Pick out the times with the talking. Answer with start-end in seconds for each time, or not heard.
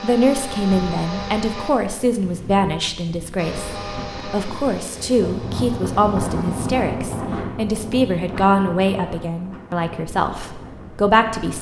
0.0-11.5.